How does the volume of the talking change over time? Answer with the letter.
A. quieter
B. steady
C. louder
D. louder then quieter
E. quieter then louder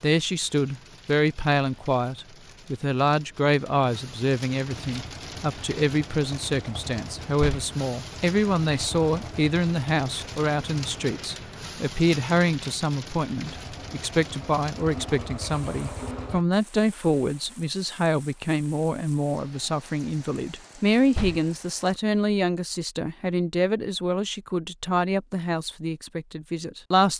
B.